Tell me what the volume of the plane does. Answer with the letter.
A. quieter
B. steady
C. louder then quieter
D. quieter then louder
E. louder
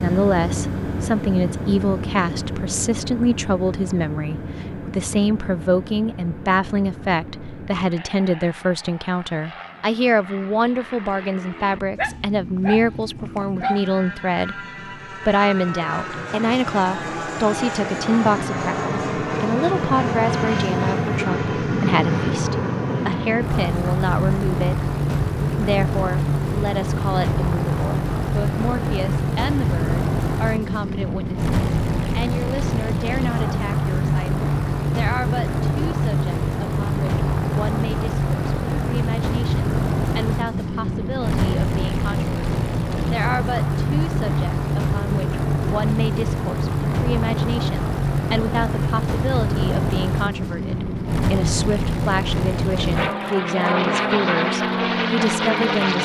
E.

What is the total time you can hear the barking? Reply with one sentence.
The barking can be heard for 2 seconds in total.